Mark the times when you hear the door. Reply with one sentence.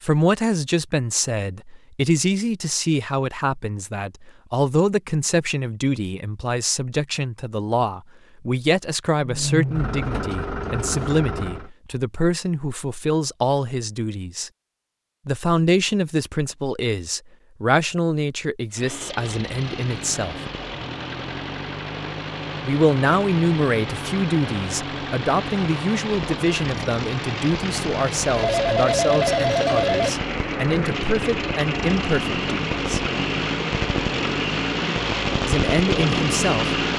The door can't be heard in this clip.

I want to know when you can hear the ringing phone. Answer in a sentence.
The ringing phone can be heard from 28.4 to 30.1 s.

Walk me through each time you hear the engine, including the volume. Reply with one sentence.
You can hear the engine briefly from 9.2 to 11.7 s; and from 18.7 to 36.9 s, getting louder.